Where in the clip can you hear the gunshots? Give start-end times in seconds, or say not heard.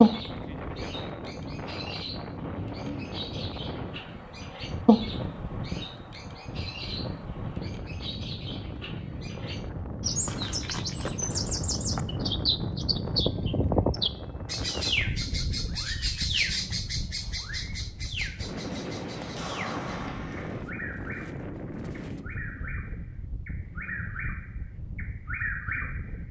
19.4-20.6.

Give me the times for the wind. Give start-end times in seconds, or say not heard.
0.0-26.2.